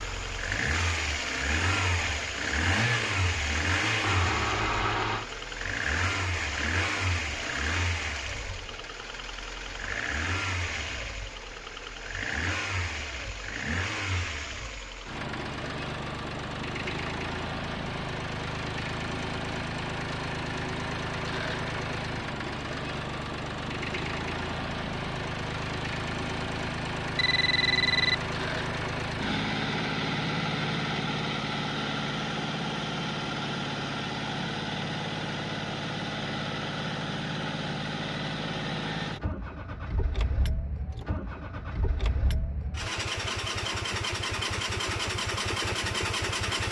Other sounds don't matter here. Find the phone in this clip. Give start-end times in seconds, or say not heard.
4.0-5.2, 27.1-28.1.